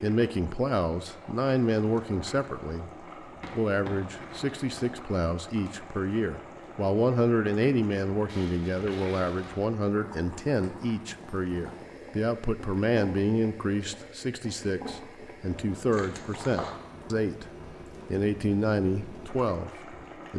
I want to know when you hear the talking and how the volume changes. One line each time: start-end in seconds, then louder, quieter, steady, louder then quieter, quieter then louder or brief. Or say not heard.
0.0-20.3 steady.